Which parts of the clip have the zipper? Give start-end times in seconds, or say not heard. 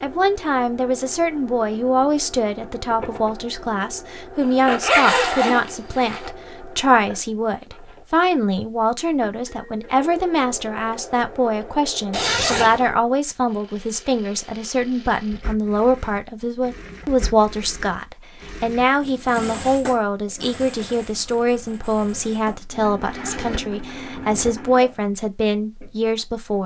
4.4-6.3, 12.1-12.8, 23.0-24.6.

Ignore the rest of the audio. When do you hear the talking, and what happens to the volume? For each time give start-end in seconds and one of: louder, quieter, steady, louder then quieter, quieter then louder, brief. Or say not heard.
0.0-26.6 steady.